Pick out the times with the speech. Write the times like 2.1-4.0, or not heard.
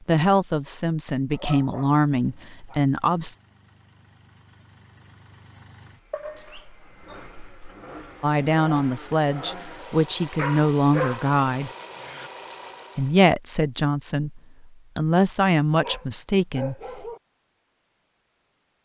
0.1-3.4, 8.2-11.7, 12.9-16.8.